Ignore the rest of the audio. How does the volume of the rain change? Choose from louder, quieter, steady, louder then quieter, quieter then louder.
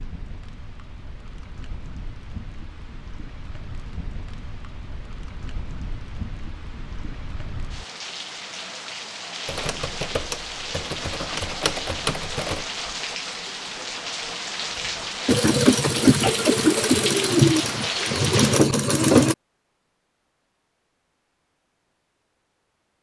louder.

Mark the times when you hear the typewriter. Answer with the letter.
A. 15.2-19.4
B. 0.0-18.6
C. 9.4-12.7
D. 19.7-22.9
C.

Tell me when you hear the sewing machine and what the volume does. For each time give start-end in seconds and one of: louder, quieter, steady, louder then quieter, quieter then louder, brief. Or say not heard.
15.2-19.4 quieter then louder.